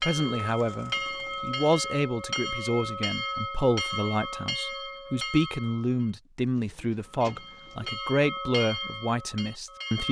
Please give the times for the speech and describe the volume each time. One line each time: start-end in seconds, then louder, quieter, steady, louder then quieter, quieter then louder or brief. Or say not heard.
0.0-10.0 steady.